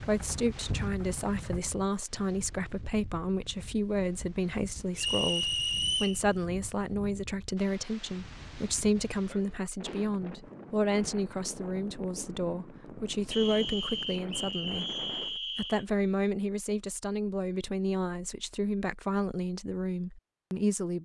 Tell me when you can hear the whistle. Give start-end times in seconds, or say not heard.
5.0-6.2, 13.3-15.8.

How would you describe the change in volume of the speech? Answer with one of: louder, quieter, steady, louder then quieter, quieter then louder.
steady.